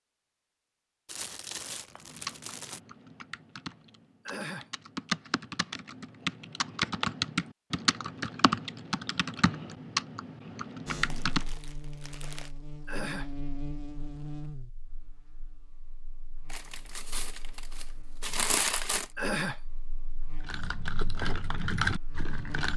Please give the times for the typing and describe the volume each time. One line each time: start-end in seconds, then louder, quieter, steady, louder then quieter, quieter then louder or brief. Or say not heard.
2.0-11.4 louder
20.4-22.7 brief.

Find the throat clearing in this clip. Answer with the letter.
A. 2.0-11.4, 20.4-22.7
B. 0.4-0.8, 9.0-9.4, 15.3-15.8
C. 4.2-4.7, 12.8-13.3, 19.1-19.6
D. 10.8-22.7
C.